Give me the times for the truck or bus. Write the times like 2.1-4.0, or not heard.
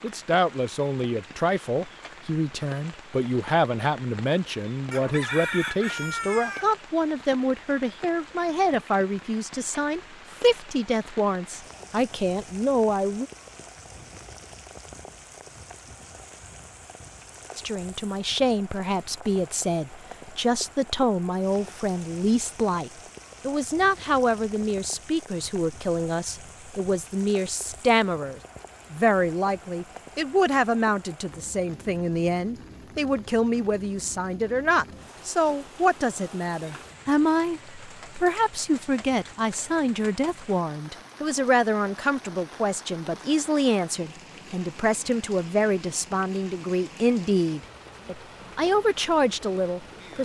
not heard.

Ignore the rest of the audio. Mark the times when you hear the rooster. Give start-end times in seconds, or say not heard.
4.9-6.7.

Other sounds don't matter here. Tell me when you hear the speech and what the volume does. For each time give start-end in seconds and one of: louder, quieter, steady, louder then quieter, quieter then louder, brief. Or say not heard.
0.0-13.3 steady
17.6-50.2 steady.